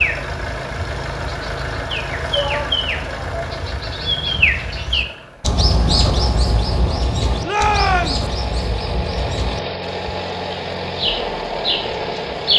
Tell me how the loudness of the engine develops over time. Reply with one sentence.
The loudness of the engine goes down, then up.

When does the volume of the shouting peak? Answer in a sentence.
The volume of the shouting peaks at 8 seconds.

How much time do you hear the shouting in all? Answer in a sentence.
The shouting can be heard for 2 seconds in total.